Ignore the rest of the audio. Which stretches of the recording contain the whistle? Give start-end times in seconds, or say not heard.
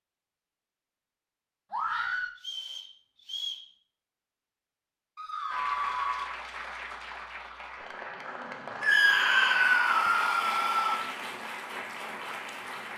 2.4-3.6, 8.9-9.6.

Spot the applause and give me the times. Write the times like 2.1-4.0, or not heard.
5.5-12.9.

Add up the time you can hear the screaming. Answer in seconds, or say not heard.
4 s.